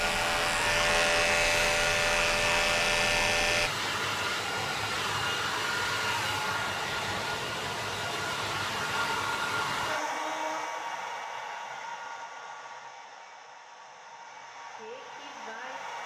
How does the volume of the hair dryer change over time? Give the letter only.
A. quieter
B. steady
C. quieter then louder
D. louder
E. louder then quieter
A.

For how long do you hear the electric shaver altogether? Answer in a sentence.
The electric shaver can be heard for 4 seconds in total.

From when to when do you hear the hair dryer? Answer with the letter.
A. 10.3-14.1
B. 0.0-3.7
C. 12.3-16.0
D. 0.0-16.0
D.